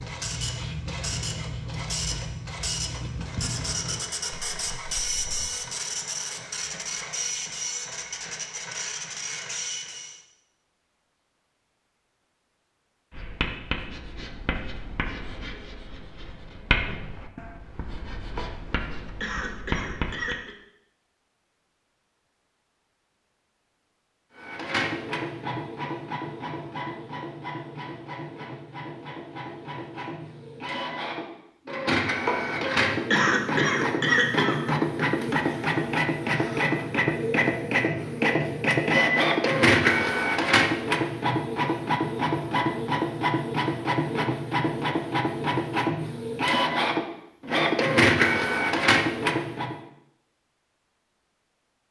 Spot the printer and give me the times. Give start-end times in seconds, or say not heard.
0.0-10.2, 24.4-49.8.